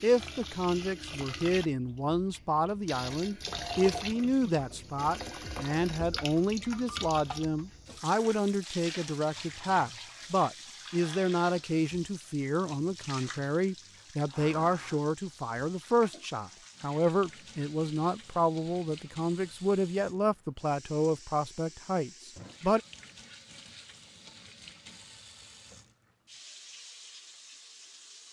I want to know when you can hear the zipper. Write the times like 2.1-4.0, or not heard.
not heard.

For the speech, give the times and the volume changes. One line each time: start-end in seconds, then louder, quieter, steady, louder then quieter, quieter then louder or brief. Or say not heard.
0.0-22.8 steady.